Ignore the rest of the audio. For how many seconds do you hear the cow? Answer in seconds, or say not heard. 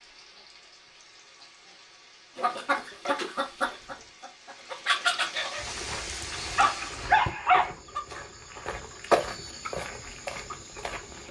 not heard.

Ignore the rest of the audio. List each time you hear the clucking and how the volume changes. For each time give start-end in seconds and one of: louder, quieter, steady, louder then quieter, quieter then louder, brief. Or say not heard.
2.4-11.2 quieter.